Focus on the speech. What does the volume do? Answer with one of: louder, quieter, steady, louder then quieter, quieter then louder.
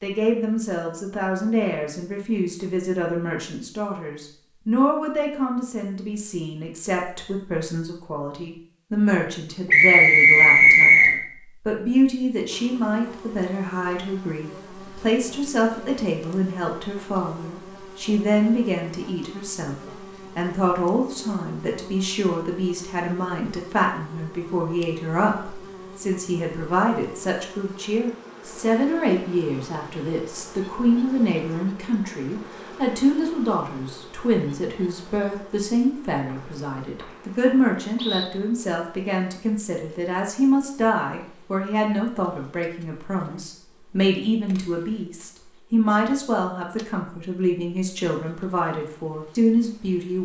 steady.